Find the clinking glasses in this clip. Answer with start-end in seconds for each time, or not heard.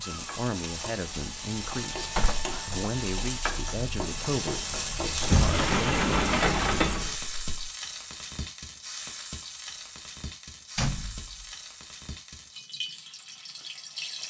not heard.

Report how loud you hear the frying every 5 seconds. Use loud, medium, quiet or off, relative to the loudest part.
loud, loud, medium.